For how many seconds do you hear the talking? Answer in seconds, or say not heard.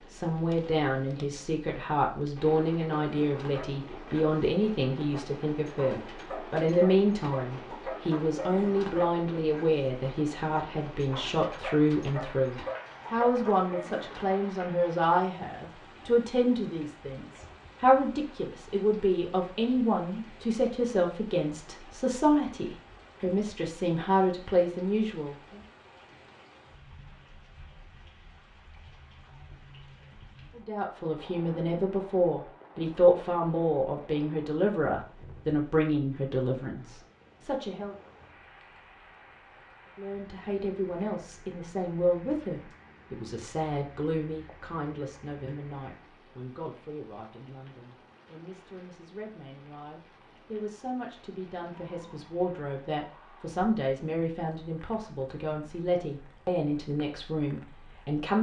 51 s.